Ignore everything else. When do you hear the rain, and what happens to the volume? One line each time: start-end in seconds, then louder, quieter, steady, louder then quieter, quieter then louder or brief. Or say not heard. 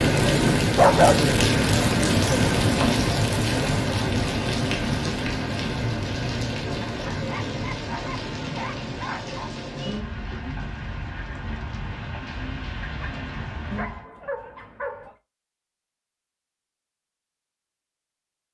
0.0-14.1 quieter.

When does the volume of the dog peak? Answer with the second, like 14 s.
1 s.